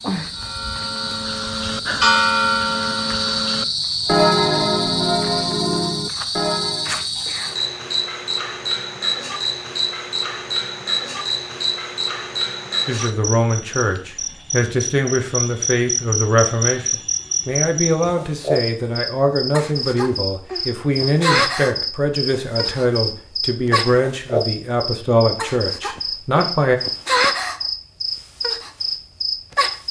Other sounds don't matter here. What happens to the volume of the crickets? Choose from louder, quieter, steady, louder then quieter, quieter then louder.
steady.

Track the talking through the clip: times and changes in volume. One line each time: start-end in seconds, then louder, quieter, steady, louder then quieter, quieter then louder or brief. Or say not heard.
12.8-26.8 steady.